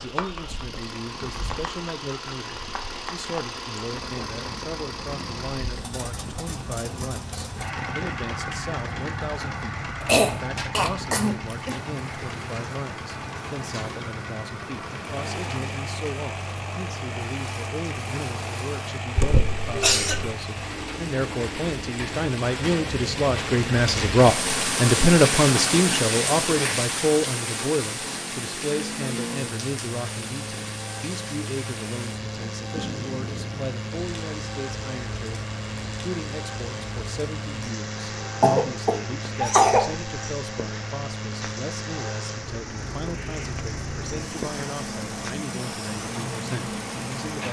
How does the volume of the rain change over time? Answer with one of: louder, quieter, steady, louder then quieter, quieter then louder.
louder then quieter.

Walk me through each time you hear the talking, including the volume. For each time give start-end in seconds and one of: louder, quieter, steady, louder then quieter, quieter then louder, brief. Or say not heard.
0.0-47.4 louder then quieter.